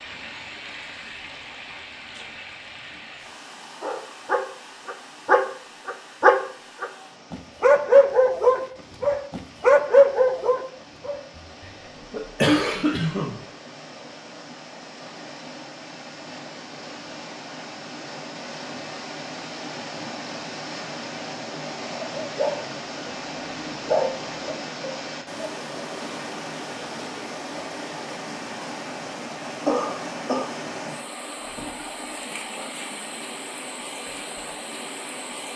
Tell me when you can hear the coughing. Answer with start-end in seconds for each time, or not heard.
11.6-13.4, 29.6-30.5.